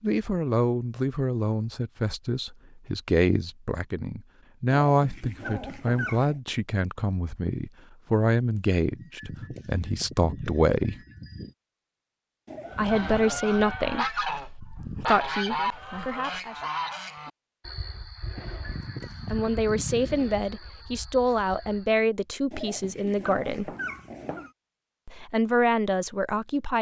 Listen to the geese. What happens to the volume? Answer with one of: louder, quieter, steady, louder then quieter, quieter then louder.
quieter.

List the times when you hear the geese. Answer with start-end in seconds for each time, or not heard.
12.7-21.9.